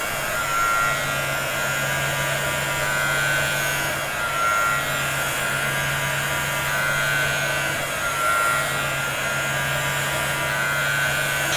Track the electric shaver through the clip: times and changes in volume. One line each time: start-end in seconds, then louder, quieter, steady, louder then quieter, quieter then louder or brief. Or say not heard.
0.0-11.5 steady.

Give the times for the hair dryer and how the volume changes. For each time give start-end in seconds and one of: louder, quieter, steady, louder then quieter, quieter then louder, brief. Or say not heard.
0.0-11.5 steady.